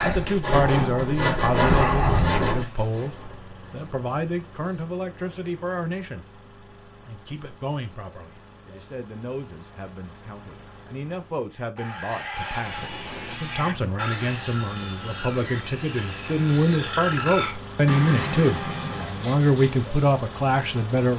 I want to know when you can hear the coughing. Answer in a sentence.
You can't hear the coughing here.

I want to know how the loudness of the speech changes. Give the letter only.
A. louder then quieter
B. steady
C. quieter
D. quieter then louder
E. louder
D.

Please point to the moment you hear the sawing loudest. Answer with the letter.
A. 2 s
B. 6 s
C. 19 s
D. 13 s
A.